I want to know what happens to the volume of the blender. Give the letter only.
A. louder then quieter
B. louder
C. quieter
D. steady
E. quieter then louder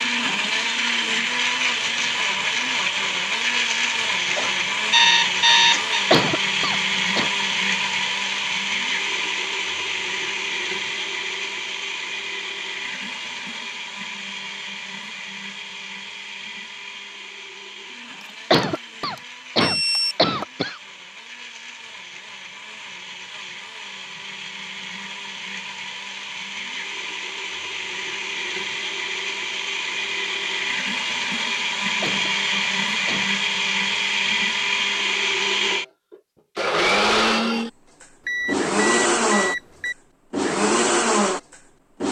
E.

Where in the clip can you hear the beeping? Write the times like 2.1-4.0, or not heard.
4.3-6.0, 18.2-20.1, 38.2-40.0.